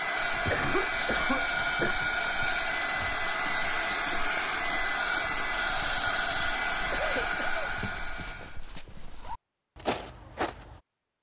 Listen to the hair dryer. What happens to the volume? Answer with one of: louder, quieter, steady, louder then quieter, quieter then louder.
steady.